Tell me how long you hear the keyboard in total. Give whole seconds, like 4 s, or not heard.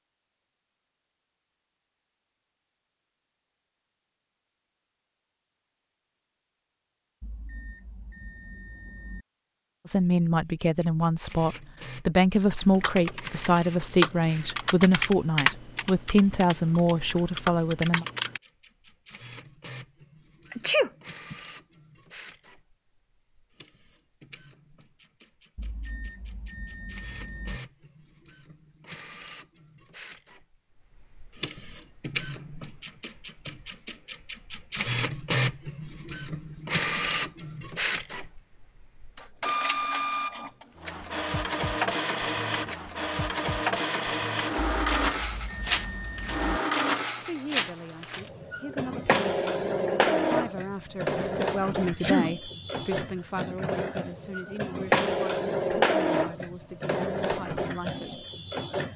6 s.